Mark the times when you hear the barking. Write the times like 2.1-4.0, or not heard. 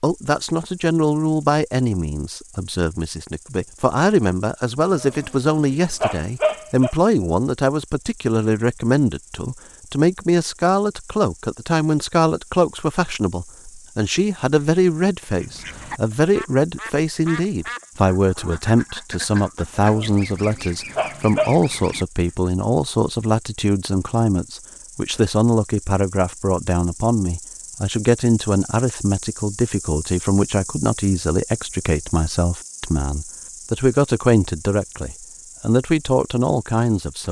4.8-7.0, 19.8-21.5.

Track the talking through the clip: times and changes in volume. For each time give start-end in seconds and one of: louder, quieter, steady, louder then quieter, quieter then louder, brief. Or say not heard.
0.0-37.2 steady.